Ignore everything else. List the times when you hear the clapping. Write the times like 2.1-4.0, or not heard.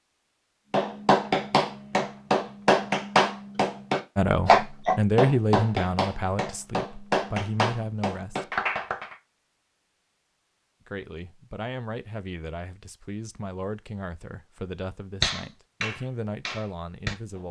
0.7-9.2, 15.2-17.4.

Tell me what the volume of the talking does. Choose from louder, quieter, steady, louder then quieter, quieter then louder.
quieter.